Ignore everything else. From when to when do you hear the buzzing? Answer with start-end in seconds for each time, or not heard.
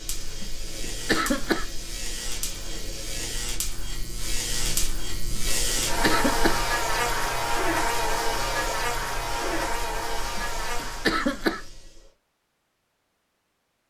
0.0-11.2.